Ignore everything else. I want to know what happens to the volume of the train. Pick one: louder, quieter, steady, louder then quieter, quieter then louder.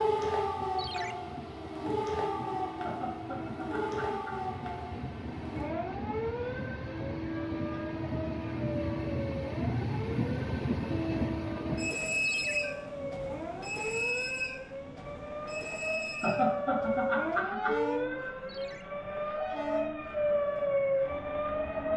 louder then quieter.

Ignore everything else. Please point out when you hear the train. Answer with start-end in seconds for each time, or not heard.
0.0-21.9.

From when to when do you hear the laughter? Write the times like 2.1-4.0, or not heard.
2.8-4.5, 16.2-17.8.